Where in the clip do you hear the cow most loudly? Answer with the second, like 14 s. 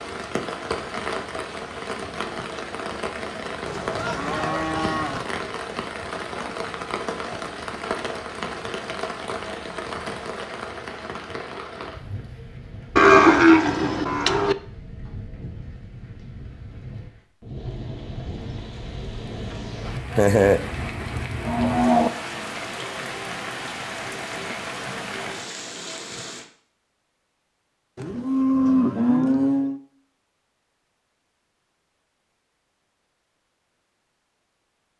13 s.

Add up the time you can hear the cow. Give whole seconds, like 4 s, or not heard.
6 s.